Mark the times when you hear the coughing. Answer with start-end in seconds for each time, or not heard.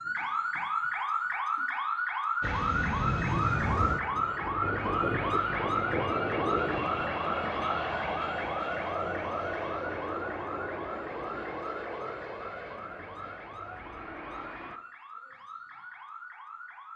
not heard.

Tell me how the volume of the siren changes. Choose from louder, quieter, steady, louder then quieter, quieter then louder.
quieter.